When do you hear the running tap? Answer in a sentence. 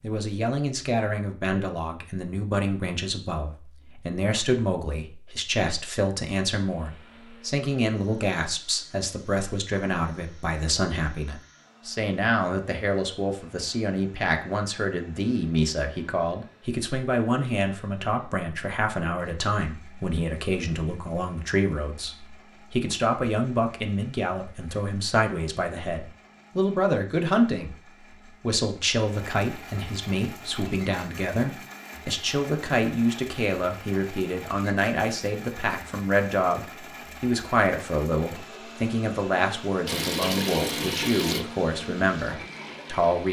You can hear the running tap from 39.9 to 43.2 s.